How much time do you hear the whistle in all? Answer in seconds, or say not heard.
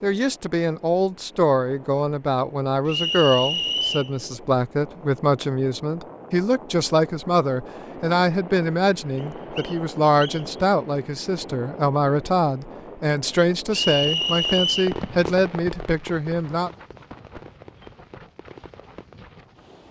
4 s.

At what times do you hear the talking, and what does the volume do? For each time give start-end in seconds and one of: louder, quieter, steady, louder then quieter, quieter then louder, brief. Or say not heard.
0.0-16.7 steady.